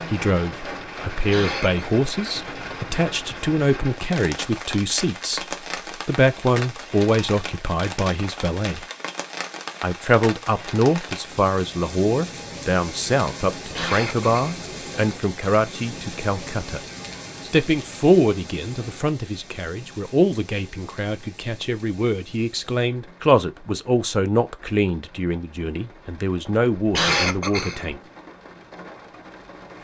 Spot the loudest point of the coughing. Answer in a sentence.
The loudest moment of the coughing is at 27 seconds.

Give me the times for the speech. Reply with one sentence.
The speech can be heard from 0.1 to 8.8 s, from 9.8 to 16.8 s and from 17.4 to 28.0 s.